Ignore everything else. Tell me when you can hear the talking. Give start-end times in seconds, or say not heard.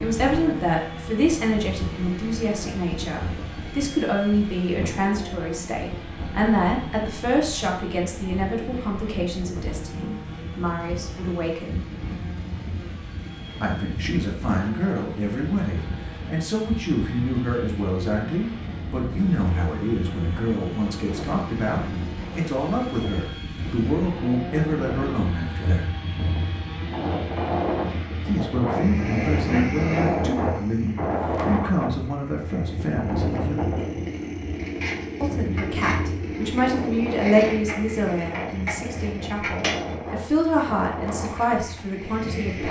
0.0-11.8, 13.6-25.9, 28.2-33.8, 35.2-42.6.